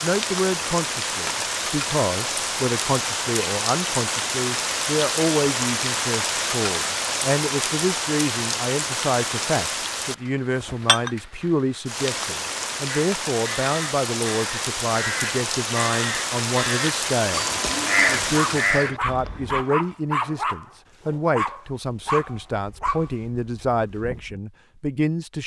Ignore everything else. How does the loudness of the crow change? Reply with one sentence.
The volume of the crow goes up.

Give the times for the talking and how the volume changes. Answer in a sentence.
You can hear the talking from 0.0 to 25.4 s, at a steady volume.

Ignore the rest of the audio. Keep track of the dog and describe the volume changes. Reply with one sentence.
The loudness of the dog goes down.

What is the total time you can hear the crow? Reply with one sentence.
You can hear the crow for 7 seconds altogether.